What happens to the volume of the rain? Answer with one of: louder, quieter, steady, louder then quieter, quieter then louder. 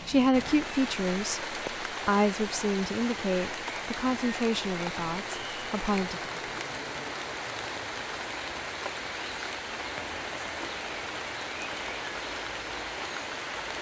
steady.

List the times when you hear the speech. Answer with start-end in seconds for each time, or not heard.
0.1-6.3.